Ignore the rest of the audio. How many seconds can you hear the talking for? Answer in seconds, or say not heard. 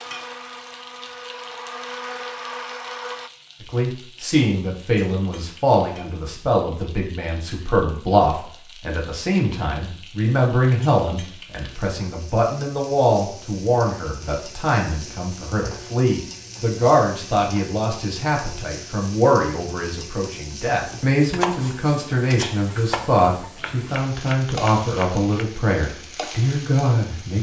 24 s.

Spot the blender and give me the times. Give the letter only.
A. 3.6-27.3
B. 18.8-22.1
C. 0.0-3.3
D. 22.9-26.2
C.